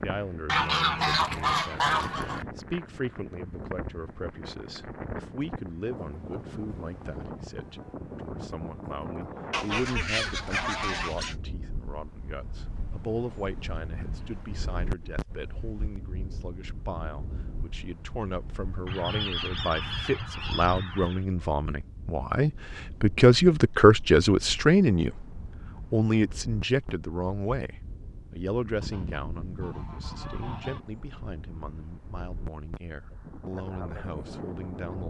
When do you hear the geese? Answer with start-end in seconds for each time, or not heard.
0.5-2.5, 9.5-11.3, 18.9-21.2, 28.8-30.8.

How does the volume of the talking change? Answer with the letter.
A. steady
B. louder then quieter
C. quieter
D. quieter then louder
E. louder
B.